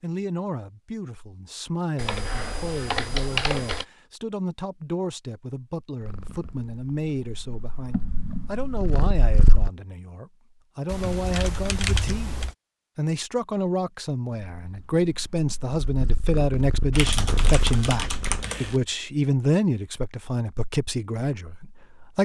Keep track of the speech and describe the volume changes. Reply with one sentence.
The volume of the speech goes up.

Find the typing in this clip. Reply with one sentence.
The typing can be heard from 1.9 to 3.9 s, from 10.8 to 12.6 s and from 16.9 to 18.8 s.